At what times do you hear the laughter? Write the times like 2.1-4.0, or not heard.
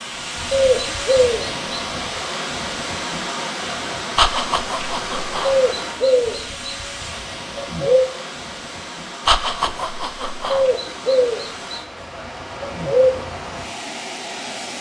4.2-5.6, 9.2-10.7.